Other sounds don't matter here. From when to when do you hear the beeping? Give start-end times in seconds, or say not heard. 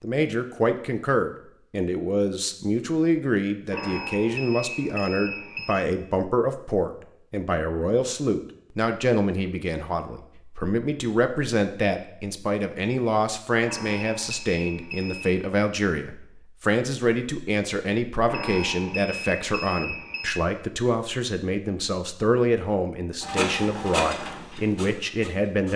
3.7-5.8, 13.7-15.4, 18.2-20.3.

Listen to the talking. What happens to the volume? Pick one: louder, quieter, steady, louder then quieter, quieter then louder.
steady.